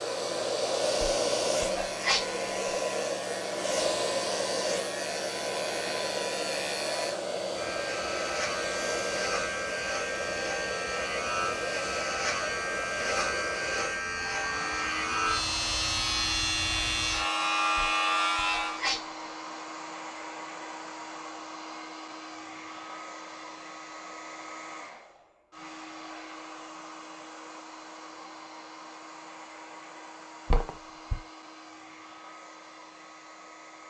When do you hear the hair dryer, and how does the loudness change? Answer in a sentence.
You can hear the hair dryer from 0.0 to 33.8 s, getting quieter.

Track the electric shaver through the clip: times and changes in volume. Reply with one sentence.
The electric shaver can be heard from 0.0 to 18.8 s, getting louder.